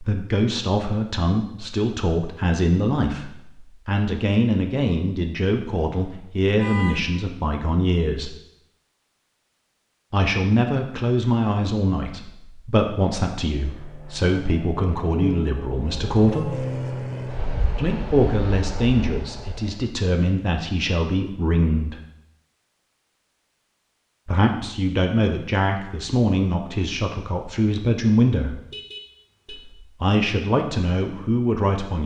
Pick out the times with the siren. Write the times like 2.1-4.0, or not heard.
not heard.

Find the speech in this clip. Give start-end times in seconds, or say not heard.
0.0-8.3, 10.1-16.5, 17.8-21.9, 24.2-28.6, 29.5-32.0.